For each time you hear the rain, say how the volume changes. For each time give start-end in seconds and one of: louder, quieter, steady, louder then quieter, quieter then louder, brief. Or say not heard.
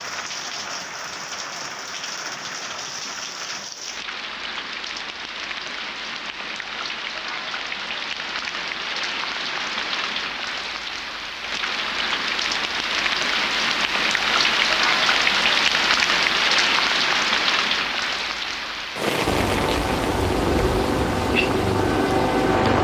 0.0-22.7 louder then quieter.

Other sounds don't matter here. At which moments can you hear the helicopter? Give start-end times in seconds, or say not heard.
19.2-22.7.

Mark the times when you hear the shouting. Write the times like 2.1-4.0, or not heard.
not heard.